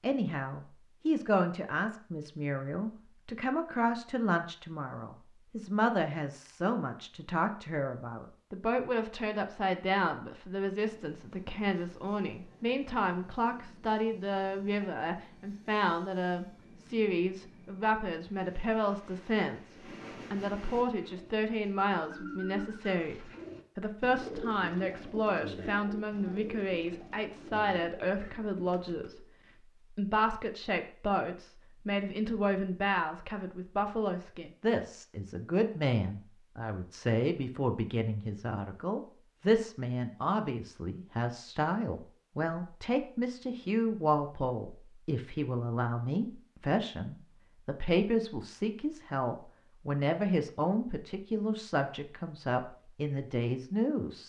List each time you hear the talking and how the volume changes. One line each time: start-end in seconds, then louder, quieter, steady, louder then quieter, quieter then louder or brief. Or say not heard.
0.0-29.2 steady
29.9-54.2 steady.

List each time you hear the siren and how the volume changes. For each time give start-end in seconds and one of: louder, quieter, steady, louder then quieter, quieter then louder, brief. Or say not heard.
not heard.